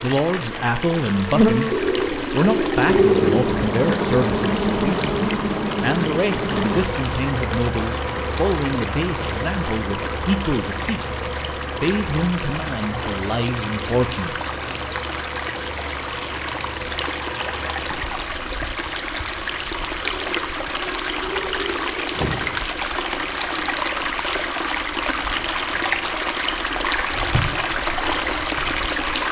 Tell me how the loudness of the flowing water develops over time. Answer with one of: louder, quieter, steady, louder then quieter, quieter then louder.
louder.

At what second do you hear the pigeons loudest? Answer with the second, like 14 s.
3 s.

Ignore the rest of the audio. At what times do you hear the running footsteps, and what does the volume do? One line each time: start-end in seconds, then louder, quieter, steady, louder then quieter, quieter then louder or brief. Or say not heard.
not heard.